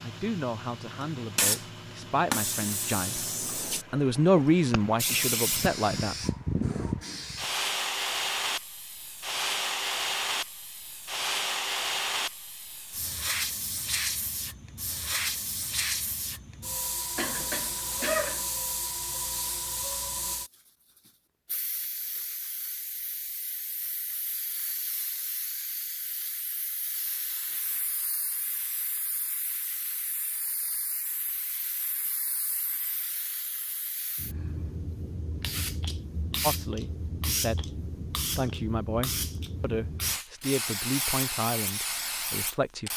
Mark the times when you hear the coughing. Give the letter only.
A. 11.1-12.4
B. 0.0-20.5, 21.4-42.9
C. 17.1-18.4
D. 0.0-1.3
C.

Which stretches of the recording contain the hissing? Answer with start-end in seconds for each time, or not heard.
0.0-20.5, 21.4-42.9.